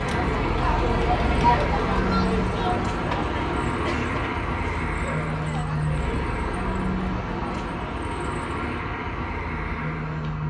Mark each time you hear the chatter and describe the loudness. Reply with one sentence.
The chatter can be heard from 0.0 to 8.8 s, getting quieter.